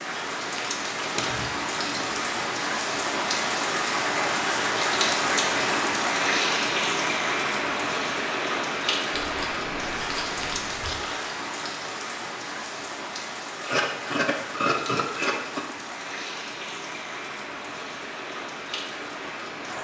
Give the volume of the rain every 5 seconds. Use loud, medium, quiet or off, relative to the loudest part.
loud, loud, medium, medium.